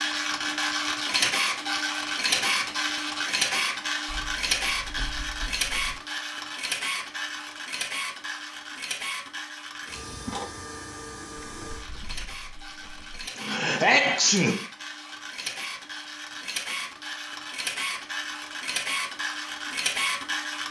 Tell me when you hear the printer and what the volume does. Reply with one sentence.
The printer can be heard from 0.0 to 20.6 s, getting quieter then louder.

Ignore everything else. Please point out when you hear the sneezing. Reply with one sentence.
You can hear the sneezing from 13.3 to 14.6 s.